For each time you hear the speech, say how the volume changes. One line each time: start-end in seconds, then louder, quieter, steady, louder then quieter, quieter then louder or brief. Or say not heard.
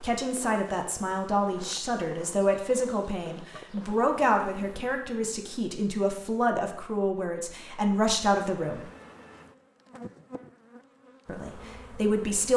0.0-8.8 steady
11.2-12.5 brief.